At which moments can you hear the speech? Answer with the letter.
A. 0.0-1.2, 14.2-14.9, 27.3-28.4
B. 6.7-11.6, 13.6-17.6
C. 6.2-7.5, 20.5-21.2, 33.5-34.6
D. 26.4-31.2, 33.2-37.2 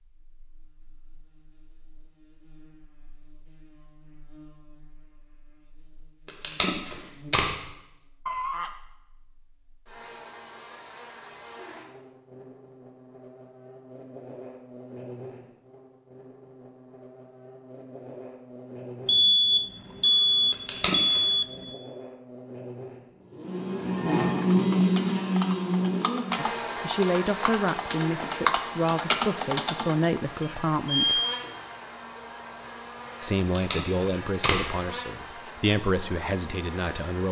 D.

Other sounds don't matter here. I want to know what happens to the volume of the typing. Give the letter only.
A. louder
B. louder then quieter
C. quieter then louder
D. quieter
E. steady
A.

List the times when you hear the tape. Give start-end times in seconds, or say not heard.
6.2-7.5, 20.5-21.2, 33.5-34.6.